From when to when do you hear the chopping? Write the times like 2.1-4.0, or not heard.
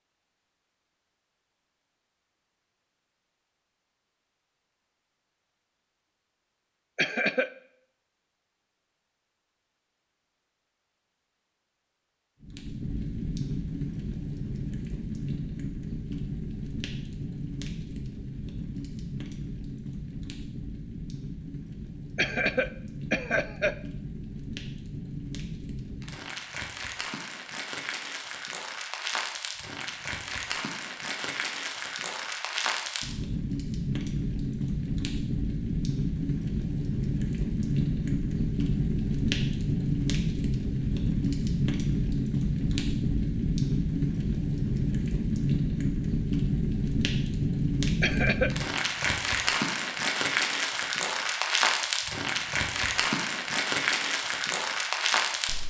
not heard.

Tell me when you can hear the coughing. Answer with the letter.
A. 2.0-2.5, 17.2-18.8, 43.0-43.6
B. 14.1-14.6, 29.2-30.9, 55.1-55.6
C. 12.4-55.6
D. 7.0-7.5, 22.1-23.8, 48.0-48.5
D.